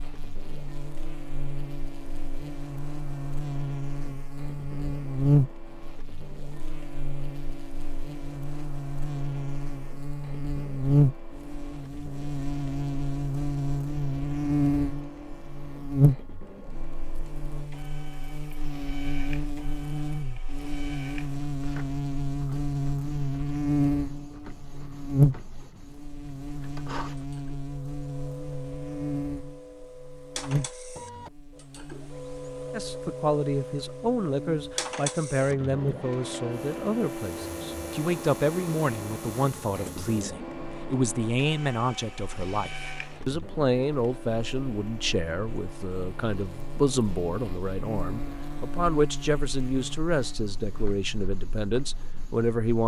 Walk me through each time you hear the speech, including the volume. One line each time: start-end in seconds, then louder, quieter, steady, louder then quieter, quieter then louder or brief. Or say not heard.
32.7-52.8 steady.